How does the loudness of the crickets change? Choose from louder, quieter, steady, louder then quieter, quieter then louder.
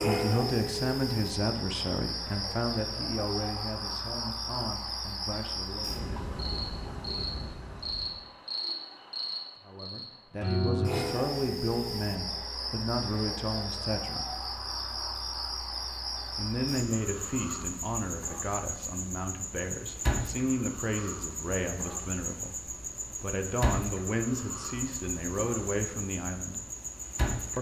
steady.